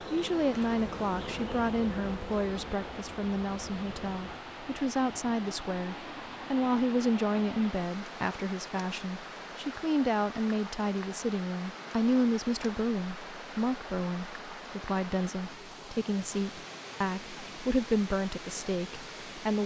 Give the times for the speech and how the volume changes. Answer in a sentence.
You can hear the speech from 0.0 to 19.6 s, at a steady volume.